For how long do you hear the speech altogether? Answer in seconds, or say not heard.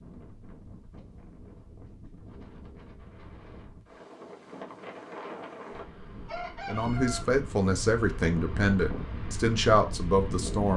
4 s.